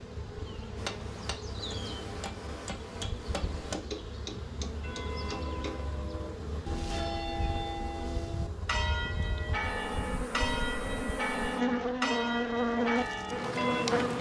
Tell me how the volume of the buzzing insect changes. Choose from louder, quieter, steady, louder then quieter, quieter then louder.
louder.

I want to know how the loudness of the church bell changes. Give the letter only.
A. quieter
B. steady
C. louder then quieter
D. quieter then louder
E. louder
E.